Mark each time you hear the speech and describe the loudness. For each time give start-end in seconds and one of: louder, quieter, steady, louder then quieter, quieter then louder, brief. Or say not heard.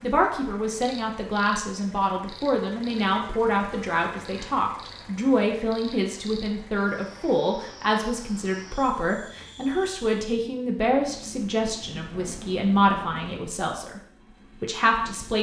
0.0-14.0 steady
14.6-15.3 brief.